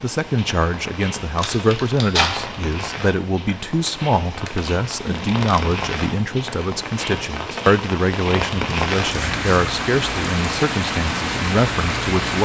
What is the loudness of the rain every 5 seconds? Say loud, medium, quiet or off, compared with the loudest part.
medium, loud, loud.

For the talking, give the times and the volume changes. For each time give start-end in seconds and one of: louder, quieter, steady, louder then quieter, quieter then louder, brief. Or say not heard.
0.0-12.3 steady.